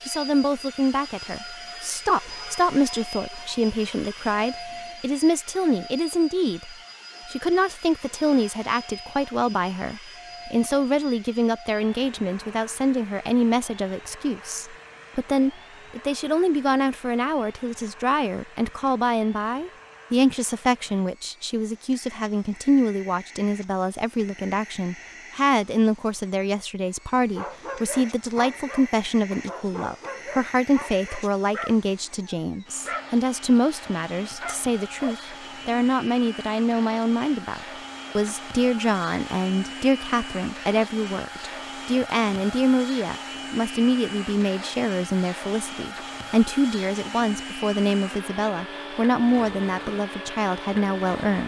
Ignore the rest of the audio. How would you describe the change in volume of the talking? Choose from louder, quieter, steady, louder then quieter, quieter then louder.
steady.